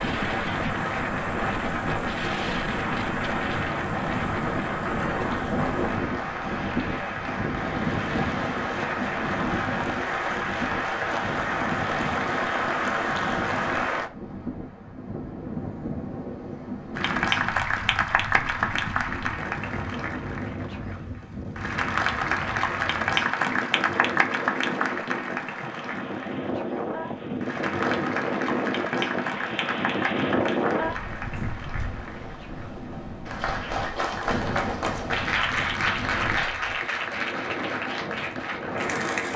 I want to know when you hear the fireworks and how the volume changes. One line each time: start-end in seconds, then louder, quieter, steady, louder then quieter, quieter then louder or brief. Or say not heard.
not heard.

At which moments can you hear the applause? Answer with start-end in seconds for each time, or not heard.
0.0-14.1, 16.9-39.3.